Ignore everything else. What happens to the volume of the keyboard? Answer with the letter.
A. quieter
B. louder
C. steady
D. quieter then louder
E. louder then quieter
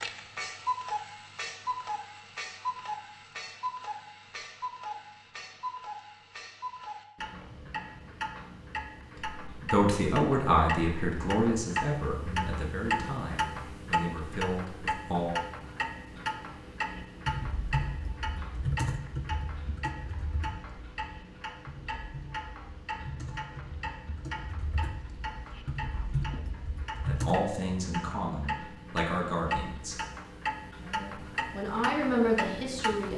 D.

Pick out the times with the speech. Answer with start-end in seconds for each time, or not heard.
9.4-15.3, 27.1-29.9, 30.8-33.1.